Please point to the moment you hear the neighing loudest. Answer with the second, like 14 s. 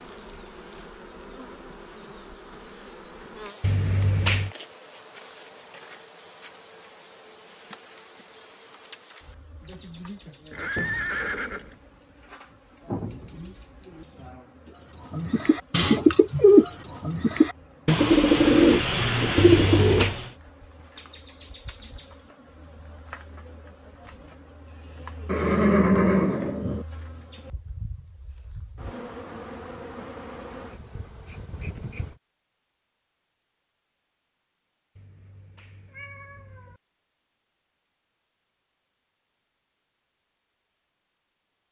26 s.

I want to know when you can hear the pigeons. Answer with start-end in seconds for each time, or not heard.
15.1-20.3.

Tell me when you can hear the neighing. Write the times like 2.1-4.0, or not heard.
10.5-11.8, 25.2-26.9.